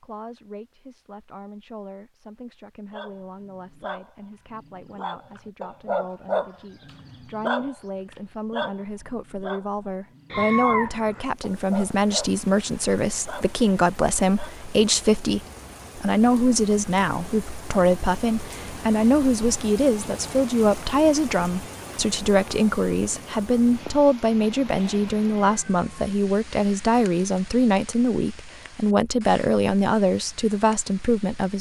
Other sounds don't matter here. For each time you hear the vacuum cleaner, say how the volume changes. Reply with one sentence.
The vacuum cleaner can't be heard in this clip.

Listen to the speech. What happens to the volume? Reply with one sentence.
The volume of the speech goes up.